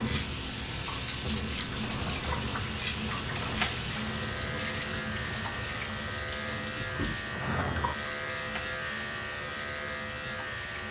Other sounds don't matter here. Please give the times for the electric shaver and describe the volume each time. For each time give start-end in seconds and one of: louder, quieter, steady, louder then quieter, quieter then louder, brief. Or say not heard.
0.0-10.8 louder.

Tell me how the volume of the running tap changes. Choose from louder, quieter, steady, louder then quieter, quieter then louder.
quieter.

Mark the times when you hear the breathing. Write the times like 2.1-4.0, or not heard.
not heard.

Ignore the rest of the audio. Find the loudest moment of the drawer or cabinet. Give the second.
8 s.